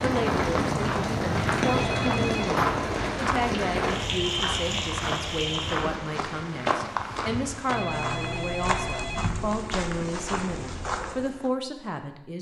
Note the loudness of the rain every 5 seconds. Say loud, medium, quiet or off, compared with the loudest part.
loud, medium, off.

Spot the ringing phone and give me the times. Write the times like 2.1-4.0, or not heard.
1.6-2.5, 7.7-9.3.